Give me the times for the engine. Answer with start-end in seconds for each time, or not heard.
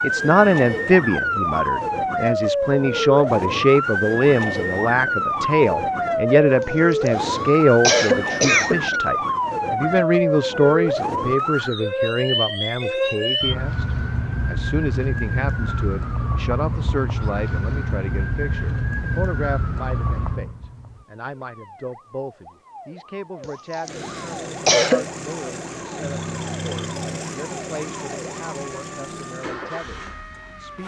23.8-30.8.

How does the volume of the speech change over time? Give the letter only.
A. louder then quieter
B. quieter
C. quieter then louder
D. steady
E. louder
B.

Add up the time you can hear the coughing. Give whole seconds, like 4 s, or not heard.
4 s.